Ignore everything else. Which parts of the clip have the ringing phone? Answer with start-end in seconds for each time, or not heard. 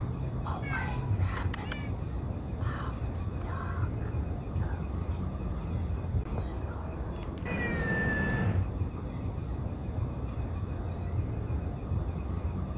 not heard.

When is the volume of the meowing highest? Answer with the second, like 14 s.
8 s.